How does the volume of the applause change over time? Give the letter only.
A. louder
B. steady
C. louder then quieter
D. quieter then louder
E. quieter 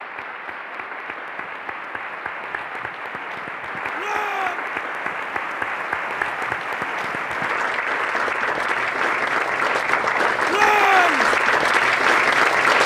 A.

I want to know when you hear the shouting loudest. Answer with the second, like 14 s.
11 s.